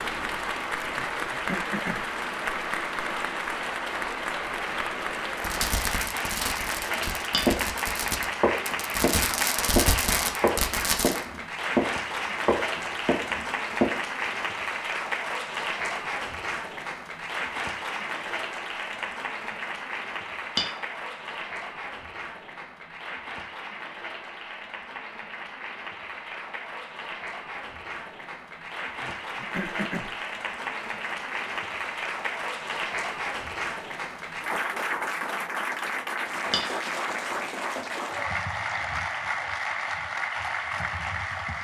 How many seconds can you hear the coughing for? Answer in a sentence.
The coughing can be heard for 2 seconds in total.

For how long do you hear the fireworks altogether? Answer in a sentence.
You can hear the fireworks for 6 seconds altogether.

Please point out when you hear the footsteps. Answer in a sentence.
The footsteps can be heard from 7.0 to 7.5 s, from 8.4 to 11.8 s and from 12.4 to 13.9 s.